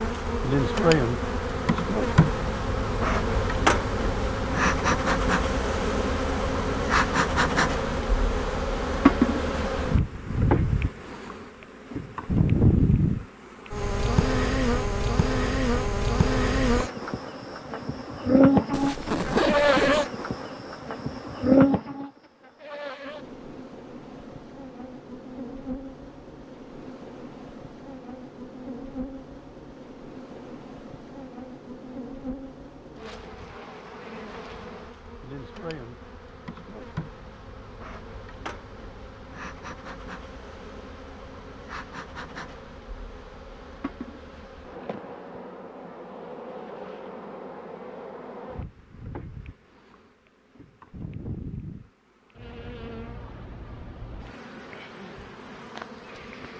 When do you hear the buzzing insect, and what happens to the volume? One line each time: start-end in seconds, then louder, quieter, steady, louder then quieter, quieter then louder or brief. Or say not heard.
0.0-56.5 quieter.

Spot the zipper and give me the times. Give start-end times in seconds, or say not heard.
18.7-20.1.